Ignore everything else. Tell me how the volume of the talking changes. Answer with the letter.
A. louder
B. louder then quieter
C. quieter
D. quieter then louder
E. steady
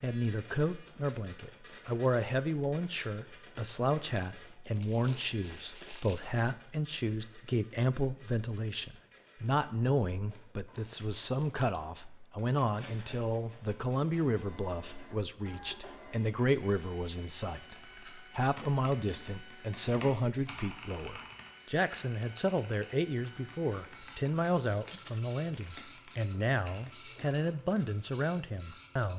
E.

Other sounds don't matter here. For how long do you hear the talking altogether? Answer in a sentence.
The talking can be heard for 29 seconds in total.